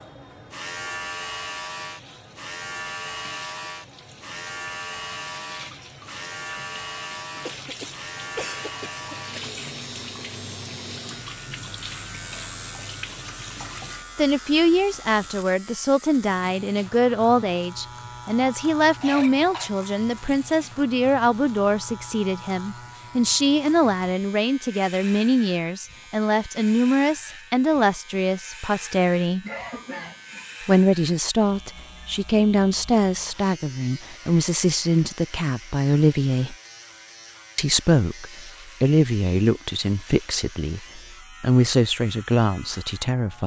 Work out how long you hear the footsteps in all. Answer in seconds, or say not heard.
not heard.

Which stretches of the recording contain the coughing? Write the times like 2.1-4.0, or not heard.
7.4-9.4, 19.0-19.7, 29.4-30.6.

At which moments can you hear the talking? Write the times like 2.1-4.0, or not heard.
14.2-29.4, 30.6-36.5, 37.5-43.4.